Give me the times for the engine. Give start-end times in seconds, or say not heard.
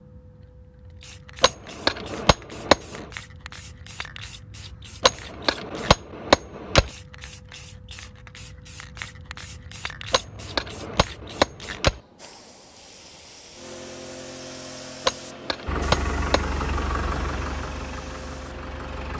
15.7-19.1.